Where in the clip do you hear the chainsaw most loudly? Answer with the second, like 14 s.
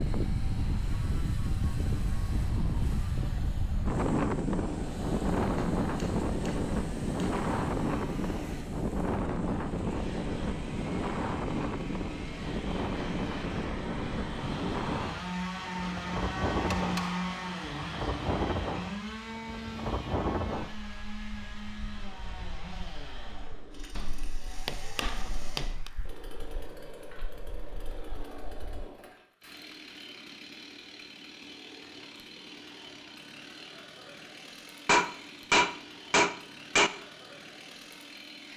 17 s.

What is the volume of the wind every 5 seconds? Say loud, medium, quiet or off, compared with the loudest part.
loud, loud, loud, medium, medium, quiet, off, off.